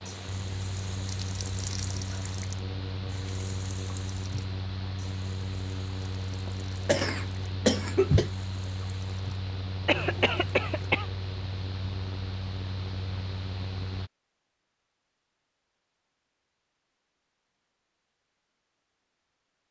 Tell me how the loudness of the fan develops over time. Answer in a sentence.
The volume of the fan stays about the same.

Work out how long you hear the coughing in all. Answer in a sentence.
The coughing can be heard for 3 seconds in total.